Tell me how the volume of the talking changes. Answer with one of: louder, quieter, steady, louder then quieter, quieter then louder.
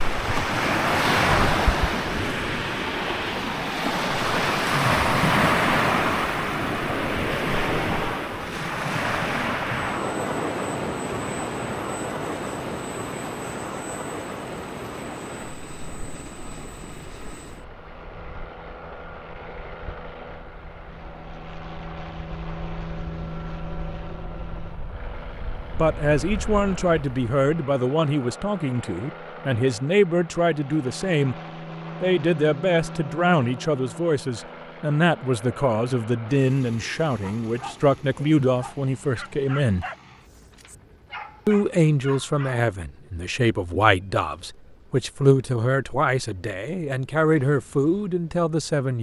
steady.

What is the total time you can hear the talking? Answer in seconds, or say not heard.
21 s.